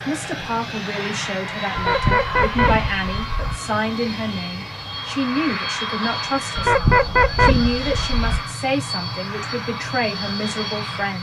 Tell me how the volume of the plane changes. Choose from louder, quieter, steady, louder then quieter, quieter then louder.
steady.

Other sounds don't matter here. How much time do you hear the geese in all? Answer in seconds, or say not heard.
4 s.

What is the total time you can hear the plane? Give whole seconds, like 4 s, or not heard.
11 s.